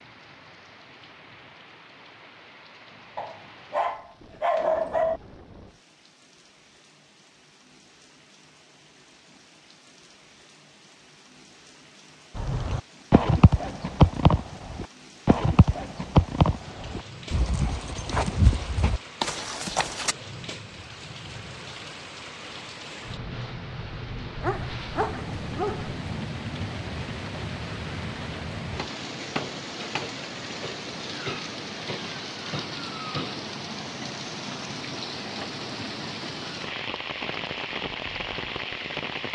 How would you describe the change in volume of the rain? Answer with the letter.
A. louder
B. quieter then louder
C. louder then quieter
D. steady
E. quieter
A.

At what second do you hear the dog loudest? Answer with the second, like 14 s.
5 s.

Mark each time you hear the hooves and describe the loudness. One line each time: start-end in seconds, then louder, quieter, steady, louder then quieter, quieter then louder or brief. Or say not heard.
12.3-20.1 quieter.